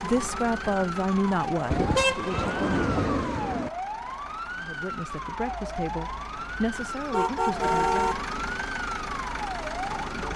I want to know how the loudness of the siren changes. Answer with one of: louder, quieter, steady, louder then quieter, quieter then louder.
steady.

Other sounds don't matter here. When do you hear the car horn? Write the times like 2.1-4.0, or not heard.
1.7-3.7, 6.8-8.2.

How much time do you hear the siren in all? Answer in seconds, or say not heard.
10 s.